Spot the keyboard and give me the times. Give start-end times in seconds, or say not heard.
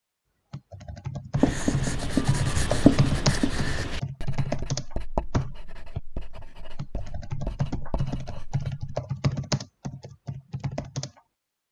0.5-11.2.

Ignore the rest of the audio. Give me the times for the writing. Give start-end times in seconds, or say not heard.
1.4-8.9.